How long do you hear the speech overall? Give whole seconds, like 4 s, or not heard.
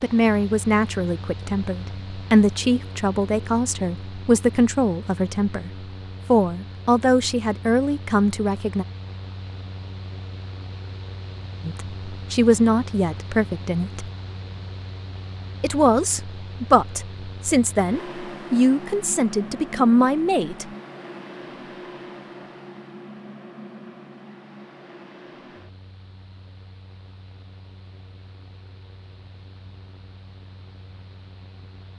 16 s.